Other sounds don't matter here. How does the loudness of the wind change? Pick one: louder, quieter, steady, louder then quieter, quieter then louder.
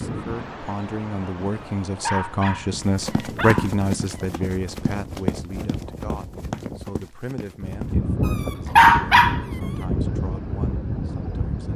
louder.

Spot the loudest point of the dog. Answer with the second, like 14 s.
9 s.